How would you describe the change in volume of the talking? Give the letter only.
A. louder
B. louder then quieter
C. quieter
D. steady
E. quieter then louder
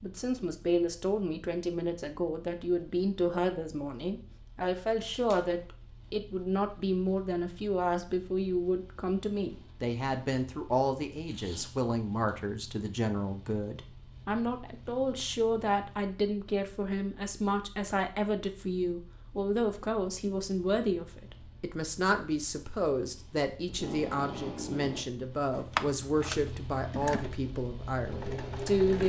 D.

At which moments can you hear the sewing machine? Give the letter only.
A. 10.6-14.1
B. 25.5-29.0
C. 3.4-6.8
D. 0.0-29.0
B.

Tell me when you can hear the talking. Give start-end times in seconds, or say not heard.
0.0-29.0.